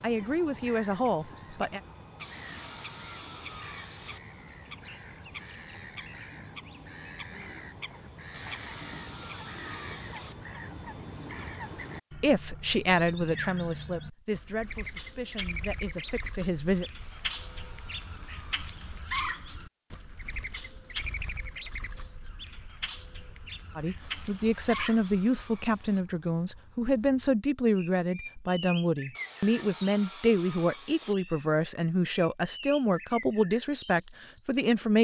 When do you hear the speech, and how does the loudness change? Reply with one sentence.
The speech can be heard briefly from 0.0 to 1.8 s; from 12.2 to 16.9 s, getting quieter; and from 23.8 to 34.9 s, at a steady volume.